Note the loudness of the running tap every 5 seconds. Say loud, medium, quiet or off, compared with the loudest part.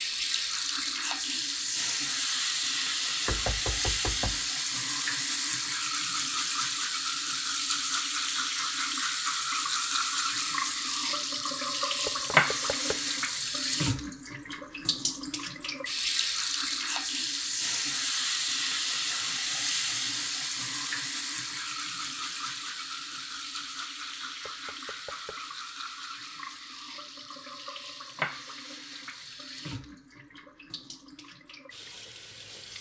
loud, loud, loud, loud, medium, medium, quiet.